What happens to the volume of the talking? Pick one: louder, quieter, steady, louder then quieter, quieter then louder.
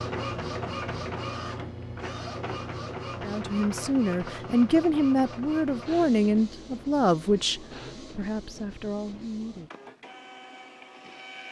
quieter.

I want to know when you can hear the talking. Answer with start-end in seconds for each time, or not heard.
3.2-9.7.